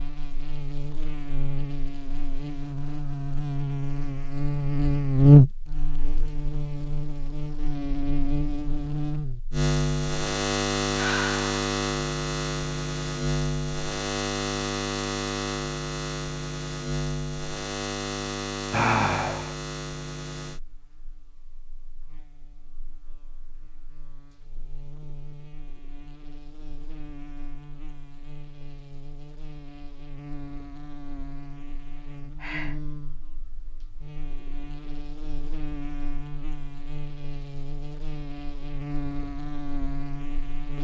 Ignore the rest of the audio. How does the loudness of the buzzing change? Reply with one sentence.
The volume of the buzzing goes down, then up.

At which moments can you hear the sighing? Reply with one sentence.
The sighing can be heard from 10.9 to 11.4 s, from 18.7 to 19.6 s and from 32.4 to 32.8 s.